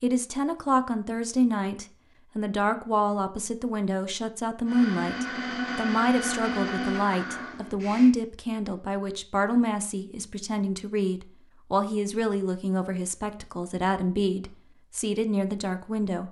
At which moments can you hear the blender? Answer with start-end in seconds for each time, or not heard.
4.7-8.1.